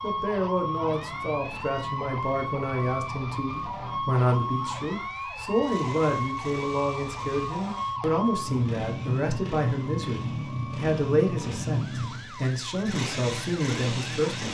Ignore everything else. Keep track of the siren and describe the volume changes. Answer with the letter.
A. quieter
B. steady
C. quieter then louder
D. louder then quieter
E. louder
A.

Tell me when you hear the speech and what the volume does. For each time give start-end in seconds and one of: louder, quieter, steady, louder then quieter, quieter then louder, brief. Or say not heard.
0.0-14.4 steady.